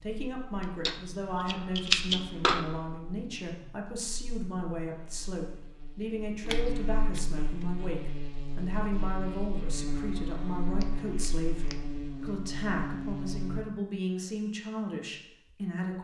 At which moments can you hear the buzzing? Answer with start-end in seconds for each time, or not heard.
0.1-13.7.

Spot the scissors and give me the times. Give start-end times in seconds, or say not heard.
0.6-2.6, 6.5-7.2, 10.8-11.8.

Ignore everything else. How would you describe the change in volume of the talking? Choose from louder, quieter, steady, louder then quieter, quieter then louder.
steady.